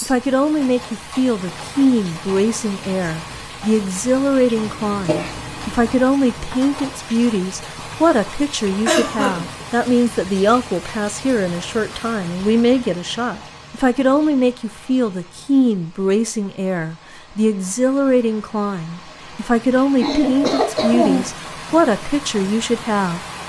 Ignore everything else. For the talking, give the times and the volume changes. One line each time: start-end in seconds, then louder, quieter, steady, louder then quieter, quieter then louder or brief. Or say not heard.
0.0-23.2 steady.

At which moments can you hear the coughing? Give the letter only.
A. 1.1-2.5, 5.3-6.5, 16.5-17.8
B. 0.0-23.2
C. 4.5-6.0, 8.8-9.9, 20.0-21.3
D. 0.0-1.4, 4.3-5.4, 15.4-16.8
C.